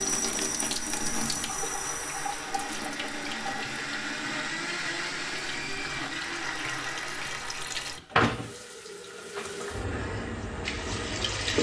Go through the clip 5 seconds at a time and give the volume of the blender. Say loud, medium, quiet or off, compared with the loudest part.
loud, loud, off.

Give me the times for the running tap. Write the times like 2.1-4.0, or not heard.
0.0-11.5.